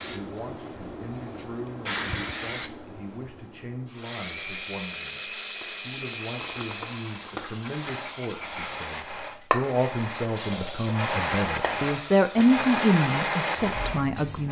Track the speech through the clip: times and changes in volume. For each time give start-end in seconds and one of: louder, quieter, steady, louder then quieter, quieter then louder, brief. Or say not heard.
0.0-14.4 louder.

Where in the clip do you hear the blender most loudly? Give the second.
13 s.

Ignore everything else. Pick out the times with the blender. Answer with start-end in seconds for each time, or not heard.
3.9-14.4.